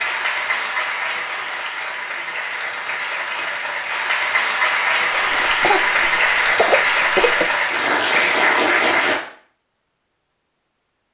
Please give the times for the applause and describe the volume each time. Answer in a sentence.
The applause can be heard from 0.0 to 9.2 s, getting louder.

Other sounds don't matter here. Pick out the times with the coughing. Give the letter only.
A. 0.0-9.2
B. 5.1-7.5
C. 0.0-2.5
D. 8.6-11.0
B.